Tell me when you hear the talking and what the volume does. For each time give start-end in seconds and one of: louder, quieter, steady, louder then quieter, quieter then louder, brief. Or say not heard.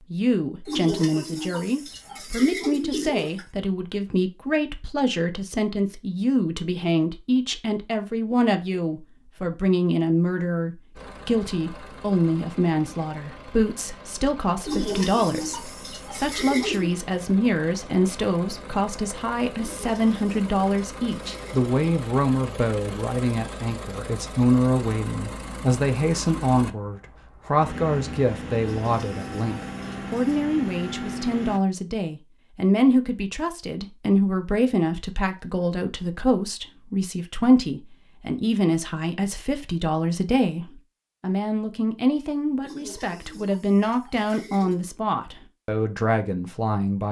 0.1-47.0 steady.